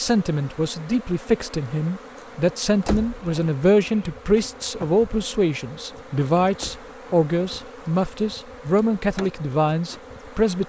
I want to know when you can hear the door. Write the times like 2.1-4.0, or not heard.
2.9-3.3, 6.5-7.7.